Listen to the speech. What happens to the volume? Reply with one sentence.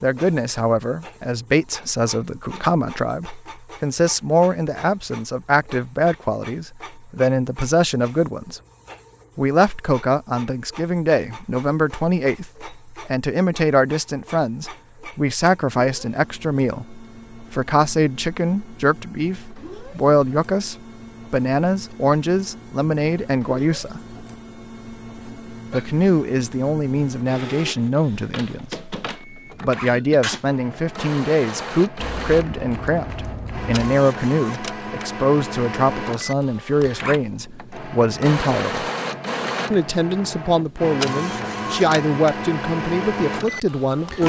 The volume of the speech stays about the same.